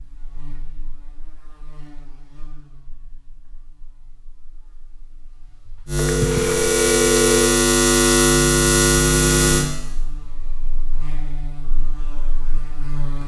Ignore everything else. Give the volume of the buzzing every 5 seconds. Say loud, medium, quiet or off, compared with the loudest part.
quiet, loud, quiet.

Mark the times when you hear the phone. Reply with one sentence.
The phone can be heard from 6.0 to 7.5 s.